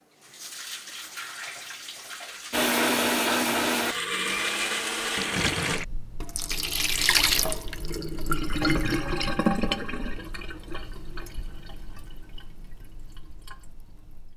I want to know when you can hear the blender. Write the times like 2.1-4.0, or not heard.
2.5-5.8.